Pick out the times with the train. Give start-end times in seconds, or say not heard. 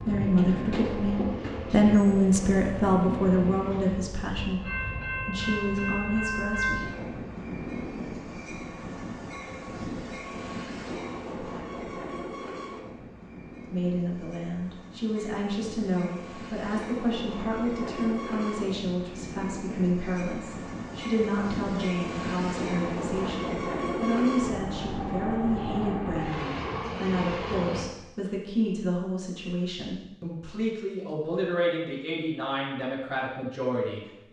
0.0-27.9.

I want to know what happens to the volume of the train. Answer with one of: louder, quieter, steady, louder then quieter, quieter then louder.
quieter then louder.